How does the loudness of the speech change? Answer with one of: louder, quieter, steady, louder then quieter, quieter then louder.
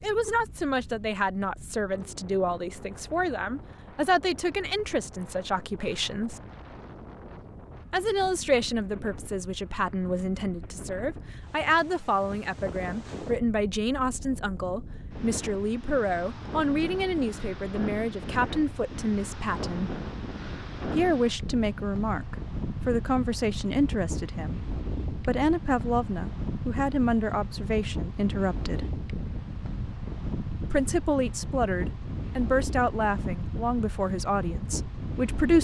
steady.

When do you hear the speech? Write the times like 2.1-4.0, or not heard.
0.0-6.4, 7.9-19.9, 20.9-28.9, 30.7-35.5.